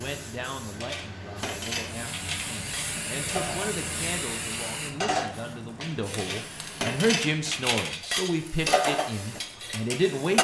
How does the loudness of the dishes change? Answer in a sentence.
The volume of the dishes goes up.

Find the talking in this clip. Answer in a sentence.
The talking can be heard from 0.0 to 10.3 s.